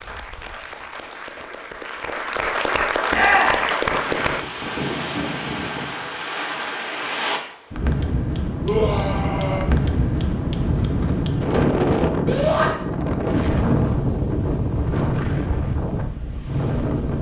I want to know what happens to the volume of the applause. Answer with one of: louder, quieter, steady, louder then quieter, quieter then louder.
louder.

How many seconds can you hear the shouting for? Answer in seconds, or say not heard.
2 s.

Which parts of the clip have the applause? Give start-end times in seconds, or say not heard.
0.0-4.5.